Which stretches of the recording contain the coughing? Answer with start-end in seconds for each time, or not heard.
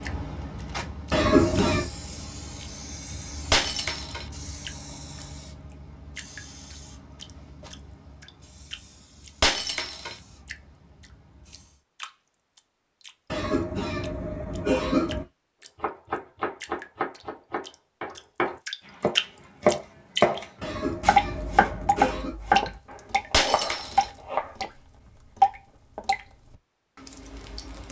1.1-1.9, 13.3-15.2, 20.6-22.4.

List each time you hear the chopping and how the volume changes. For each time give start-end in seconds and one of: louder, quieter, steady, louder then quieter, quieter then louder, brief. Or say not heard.
15.8-24.6 louder then quieter.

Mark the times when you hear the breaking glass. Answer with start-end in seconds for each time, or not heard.
3.5-4.3, 9.4-10.2, 23.3-24.1.